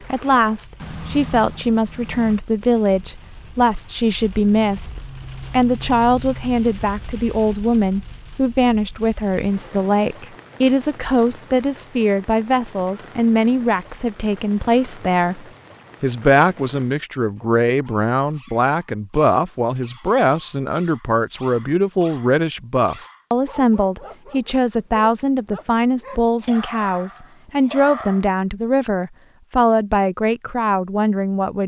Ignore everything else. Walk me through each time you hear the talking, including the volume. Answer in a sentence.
The talking can be heard from 0.0 to 31.6 s, at a steady volume.